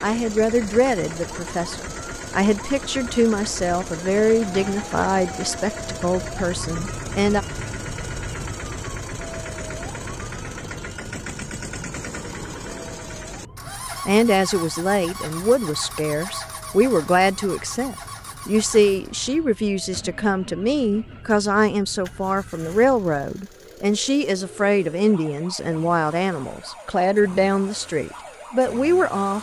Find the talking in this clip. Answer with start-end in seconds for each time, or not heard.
0.0-7.5, 13.7-29.3.